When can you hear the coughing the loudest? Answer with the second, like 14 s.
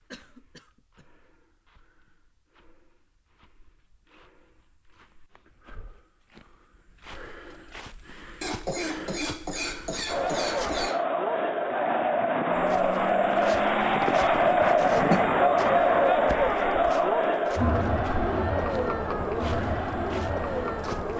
15 s.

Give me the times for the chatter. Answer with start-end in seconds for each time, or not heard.
10.1-21.1.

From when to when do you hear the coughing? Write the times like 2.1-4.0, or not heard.
0.1-1.1, 8.4-11.0, 14.6-15.2.